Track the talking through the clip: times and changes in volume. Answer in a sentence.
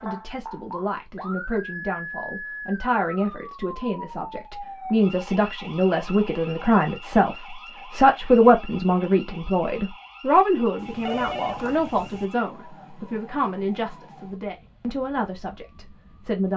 The talking can be heard from 0.0 to 16.5 s, getting louder then quieter.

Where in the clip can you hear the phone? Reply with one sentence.
The phone can be heard from 10.8 to 12.3 s.